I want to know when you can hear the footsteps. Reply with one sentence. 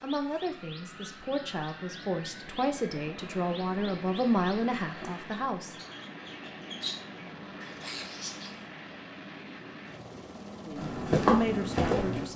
The footsteps can be heard from 10.8 to 12.2 s.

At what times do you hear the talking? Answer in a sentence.
You can hear the talking from 0.0 to 5.8 s and from 10.7 to 12.3 s.